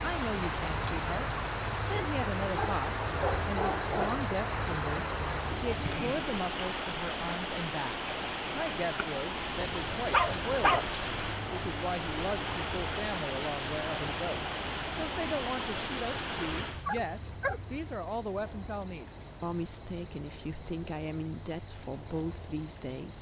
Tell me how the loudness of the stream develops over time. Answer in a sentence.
The volume of the stream goes down.